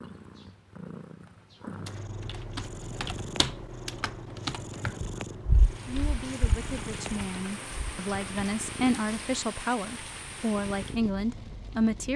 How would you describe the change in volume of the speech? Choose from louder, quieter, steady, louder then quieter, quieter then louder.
louder.